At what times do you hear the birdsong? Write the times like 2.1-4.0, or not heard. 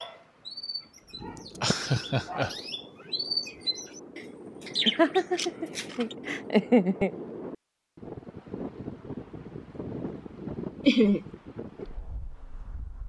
0.0-6.3.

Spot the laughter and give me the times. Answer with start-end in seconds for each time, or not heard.
1.6-2.5, 4.8-7.2, 10.8-11.2.